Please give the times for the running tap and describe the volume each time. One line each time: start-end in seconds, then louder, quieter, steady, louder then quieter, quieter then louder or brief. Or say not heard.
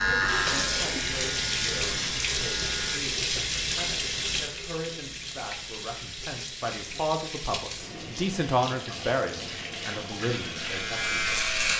0.0-11.7 quieter.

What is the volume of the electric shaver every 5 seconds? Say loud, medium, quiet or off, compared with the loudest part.
loud, off, loud.